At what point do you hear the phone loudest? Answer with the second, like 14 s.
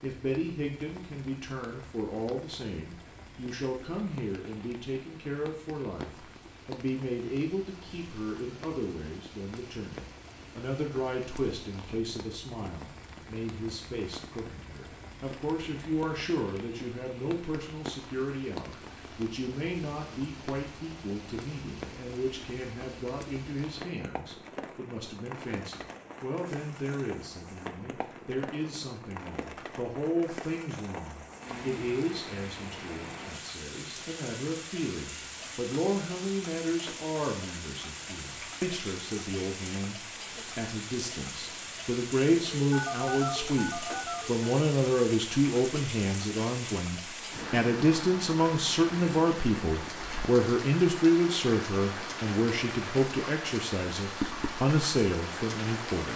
43 s.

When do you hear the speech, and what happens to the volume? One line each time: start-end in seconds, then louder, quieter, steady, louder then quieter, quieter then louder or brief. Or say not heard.
0.0-56.1 louder.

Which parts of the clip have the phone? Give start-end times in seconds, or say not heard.
42.6-44.5.